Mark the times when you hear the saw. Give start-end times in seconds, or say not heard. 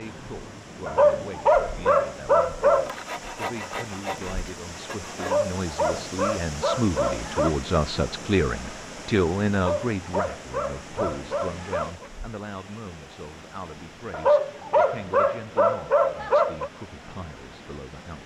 2.9-5.3.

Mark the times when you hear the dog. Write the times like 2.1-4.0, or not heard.
0.8-3.0, 5.2-7.5, 9.5-12.1, 14.1-16.7.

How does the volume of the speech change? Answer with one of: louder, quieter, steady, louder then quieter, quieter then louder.
louder then quieter.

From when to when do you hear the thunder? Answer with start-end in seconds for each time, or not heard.
not heard.